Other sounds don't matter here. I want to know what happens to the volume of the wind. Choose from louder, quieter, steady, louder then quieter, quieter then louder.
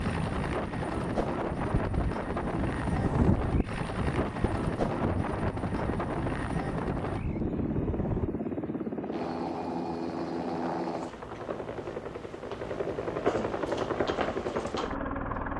louder then quieter.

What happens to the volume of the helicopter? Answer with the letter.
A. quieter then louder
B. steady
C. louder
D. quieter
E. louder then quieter
B.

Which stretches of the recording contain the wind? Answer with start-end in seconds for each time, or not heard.
0.0-8.4.